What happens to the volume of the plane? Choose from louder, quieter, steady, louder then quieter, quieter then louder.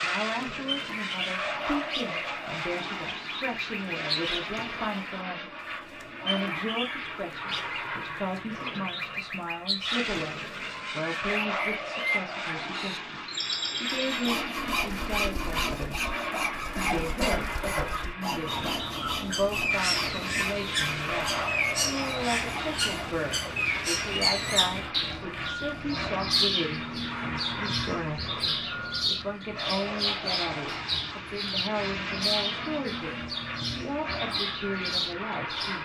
steady.